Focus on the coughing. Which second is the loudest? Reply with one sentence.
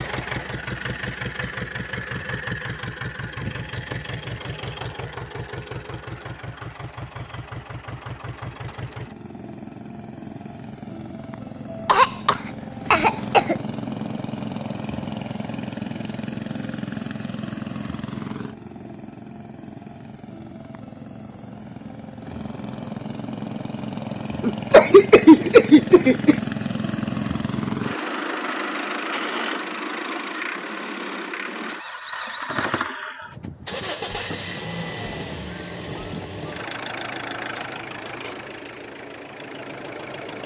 The loudest moment of the coughing is at 25 seconds.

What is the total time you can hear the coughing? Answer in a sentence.
The coughing can be heard for 4 seconds in total.